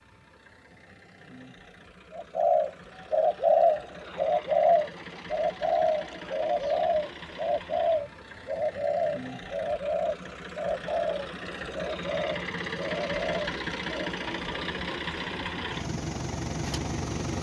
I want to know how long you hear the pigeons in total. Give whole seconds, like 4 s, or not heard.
12 s.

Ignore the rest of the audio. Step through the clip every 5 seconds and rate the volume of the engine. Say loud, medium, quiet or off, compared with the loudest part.
quiet, medium, loud, loud.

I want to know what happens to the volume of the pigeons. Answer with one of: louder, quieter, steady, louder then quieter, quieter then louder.
quieter.